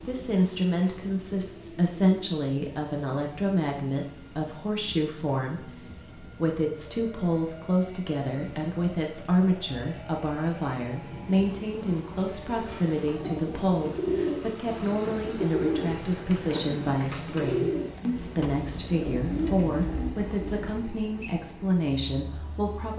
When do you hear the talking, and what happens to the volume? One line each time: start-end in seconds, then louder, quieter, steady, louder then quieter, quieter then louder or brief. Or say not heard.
0.1-22.9 steady.